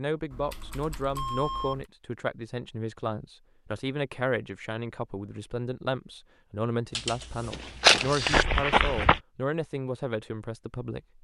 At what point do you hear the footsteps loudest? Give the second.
8 s.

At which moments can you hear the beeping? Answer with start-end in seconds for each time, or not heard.
1.1-1.8.